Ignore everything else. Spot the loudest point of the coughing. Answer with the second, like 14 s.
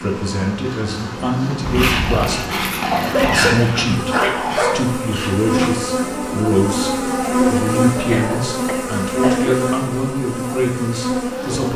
3 s.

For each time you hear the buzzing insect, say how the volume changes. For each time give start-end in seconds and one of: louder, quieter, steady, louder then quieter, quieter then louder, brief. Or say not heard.
0.0-11.7 louder.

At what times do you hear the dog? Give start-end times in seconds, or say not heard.
1.6-8.4.